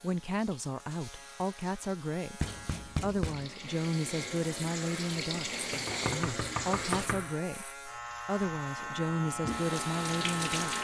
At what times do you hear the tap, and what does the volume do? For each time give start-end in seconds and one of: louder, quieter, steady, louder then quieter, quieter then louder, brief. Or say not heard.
0.0-7.1 louder
8.8-10.8 brief.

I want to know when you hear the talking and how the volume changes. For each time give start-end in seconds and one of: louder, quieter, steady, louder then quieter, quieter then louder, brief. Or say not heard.
0.0-10.8 steady.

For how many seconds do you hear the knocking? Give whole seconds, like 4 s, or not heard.
3 s.